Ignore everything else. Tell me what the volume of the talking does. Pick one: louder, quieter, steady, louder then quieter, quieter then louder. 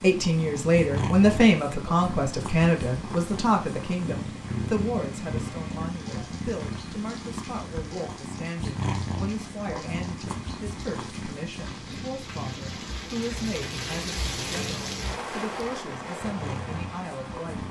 quieter.